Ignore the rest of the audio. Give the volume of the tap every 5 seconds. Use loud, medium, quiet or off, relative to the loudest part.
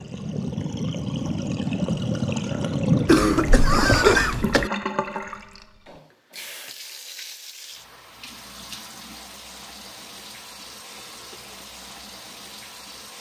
loud, quiet, quiet.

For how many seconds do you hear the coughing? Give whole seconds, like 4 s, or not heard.
2 s.